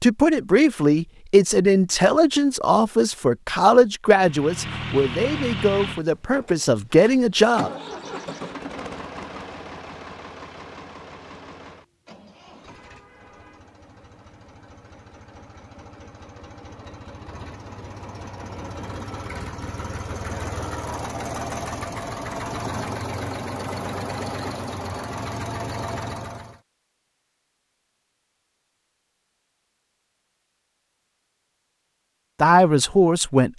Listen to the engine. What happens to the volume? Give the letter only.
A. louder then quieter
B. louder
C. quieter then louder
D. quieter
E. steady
C.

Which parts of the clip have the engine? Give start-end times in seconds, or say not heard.
4.2-26.6.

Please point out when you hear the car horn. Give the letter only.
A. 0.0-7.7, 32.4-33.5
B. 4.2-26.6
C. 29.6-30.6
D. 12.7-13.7
D.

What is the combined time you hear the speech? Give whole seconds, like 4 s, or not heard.
9 s.